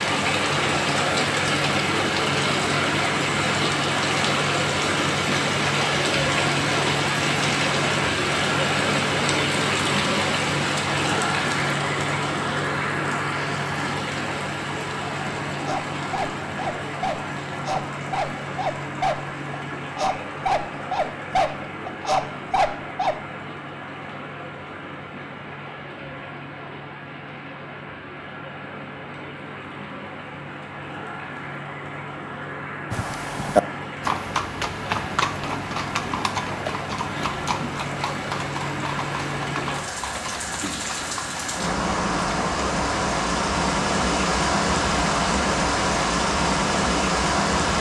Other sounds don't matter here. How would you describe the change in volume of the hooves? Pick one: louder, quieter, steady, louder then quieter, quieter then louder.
quieter.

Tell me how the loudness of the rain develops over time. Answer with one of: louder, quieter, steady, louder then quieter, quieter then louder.
quieter then louder.